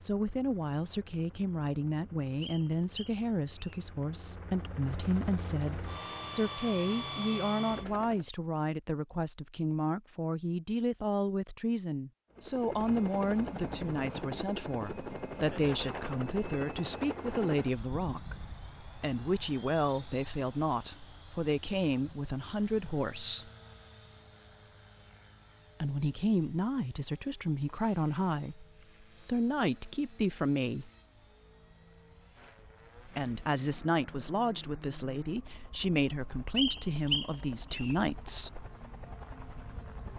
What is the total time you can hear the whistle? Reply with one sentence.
The whistle can be heard for 3 seconds in total.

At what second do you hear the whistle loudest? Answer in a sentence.
The loudest moment of the whistle is at 37 seconds.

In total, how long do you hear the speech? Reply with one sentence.
The speech can be heard for 34 seconds in total.